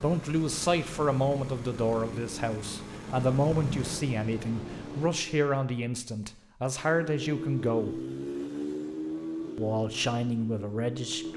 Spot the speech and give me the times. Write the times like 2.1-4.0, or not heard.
0.0-8.0, 9.6-11.3.